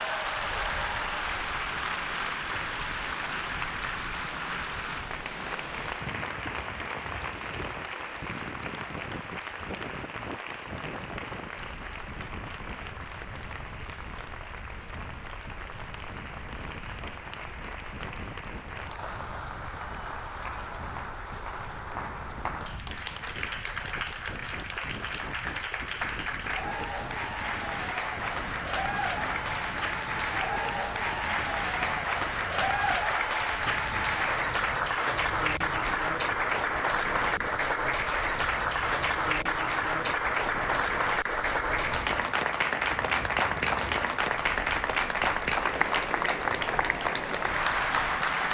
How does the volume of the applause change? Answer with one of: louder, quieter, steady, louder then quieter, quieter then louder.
quieter then louder.